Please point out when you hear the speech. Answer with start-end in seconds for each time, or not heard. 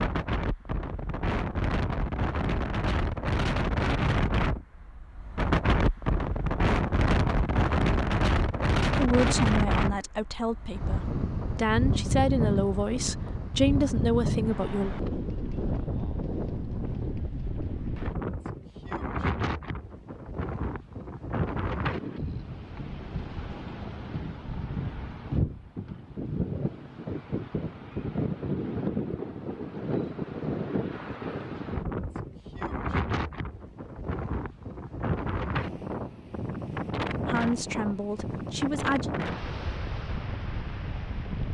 8.9-14.9, 37.2-39.1.